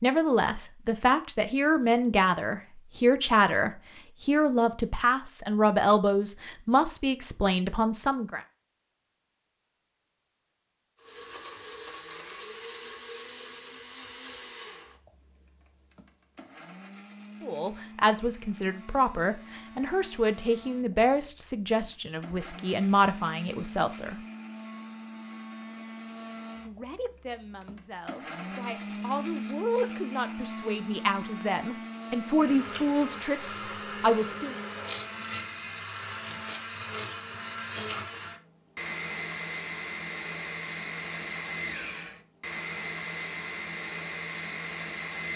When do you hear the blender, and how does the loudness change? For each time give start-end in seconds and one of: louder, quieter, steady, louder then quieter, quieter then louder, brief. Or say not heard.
10.9-45.3 louder.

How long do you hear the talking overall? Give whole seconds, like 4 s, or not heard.
23 s.